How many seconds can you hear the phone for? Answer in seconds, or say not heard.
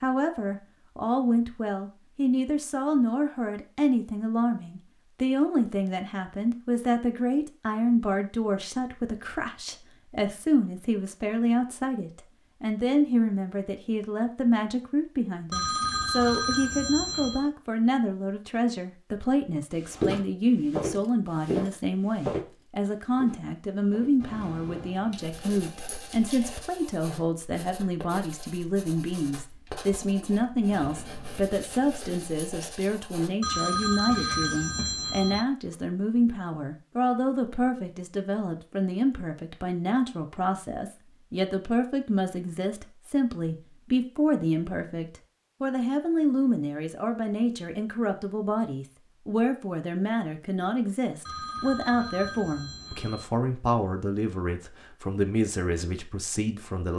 6 s.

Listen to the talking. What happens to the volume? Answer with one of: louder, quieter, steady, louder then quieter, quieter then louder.
steady.